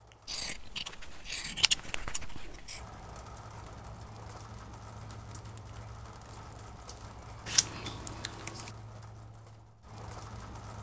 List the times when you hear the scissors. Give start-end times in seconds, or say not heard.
0.2-2.8, 7.5-8.7.